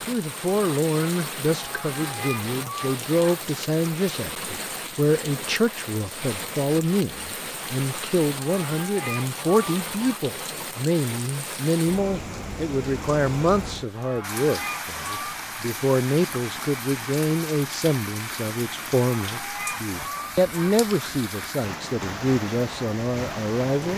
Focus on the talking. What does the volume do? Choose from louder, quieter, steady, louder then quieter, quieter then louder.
steady.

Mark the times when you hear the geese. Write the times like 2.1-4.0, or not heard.
1.6-3.4, 8.3-10.2, 13.9-15.4, 19.1-20.8.